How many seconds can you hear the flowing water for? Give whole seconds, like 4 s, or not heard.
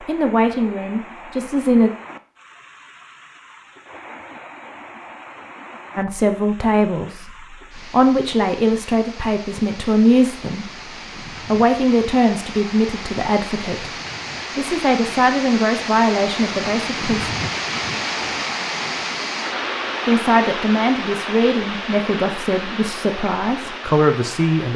25 s.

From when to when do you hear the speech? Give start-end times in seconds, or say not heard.
0.1-1.9, 6.0-10.7, 11.4-13.9, 14.6-17.3, 20.1-24.7.